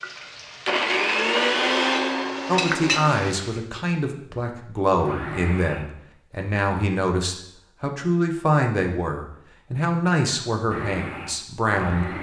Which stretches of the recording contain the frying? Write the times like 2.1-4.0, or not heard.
0.0-3.6.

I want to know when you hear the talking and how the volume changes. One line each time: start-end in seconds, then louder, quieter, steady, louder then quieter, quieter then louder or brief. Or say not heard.
2.5-12.1 steady.